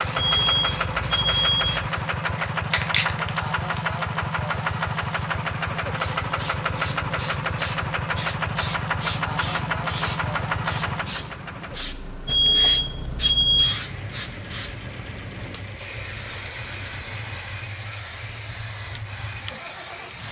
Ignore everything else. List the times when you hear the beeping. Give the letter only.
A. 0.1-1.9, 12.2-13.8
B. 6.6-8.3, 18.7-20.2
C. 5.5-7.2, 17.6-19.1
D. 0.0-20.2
A.